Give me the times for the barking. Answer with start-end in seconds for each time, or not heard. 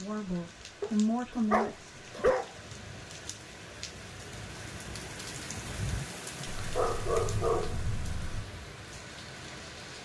0.8-2.5, 6.5-8.4.